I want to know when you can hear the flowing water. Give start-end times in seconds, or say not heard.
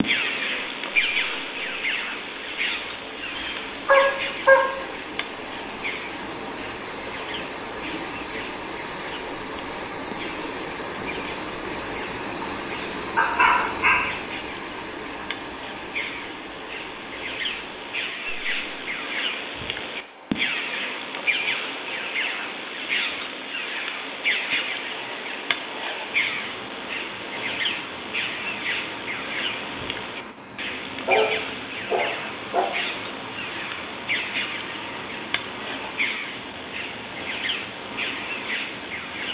0.0-39.2.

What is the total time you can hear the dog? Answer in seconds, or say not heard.
4 s.